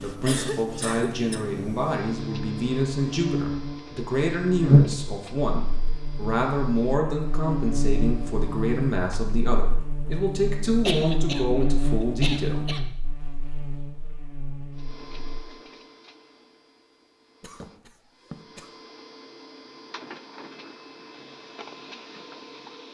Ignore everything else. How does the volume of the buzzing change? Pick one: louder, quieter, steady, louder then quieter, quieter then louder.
louder then quieter.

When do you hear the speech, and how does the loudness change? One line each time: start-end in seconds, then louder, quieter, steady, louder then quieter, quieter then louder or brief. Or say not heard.
0.0-12.7 steady.